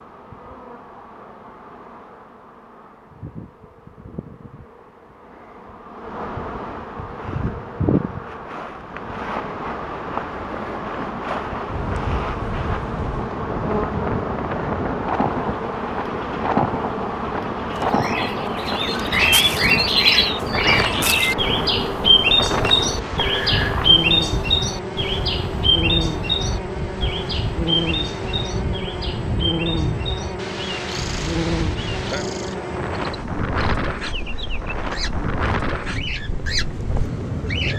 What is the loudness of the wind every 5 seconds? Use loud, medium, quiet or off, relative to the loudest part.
off, off, loud, loud, loud, medium, loud, loud.